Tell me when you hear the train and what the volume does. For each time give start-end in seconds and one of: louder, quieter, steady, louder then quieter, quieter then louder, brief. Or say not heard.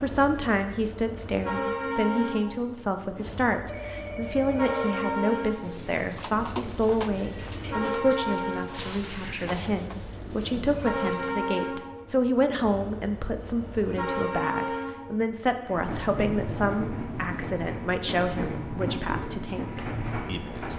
0.0-20.7 steady.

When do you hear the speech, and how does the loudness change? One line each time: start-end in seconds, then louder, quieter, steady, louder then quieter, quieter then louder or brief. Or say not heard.
0.0-20.7 steady.